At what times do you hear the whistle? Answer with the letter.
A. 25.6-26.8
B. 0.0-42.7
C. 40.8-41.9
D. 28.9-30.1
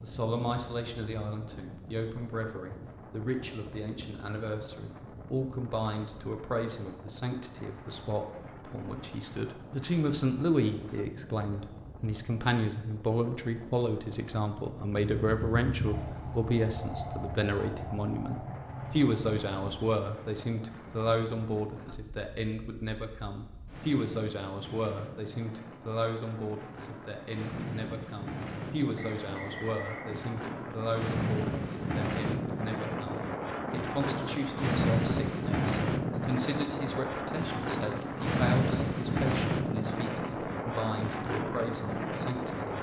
D.